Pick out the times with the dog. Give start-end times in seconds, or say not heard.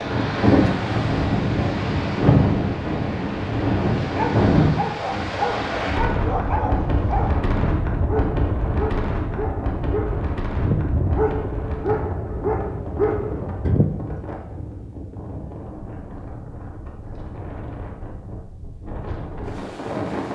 4.0-13.8.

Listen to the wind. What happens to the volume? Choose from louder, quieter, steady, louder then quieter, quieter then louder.
quieter.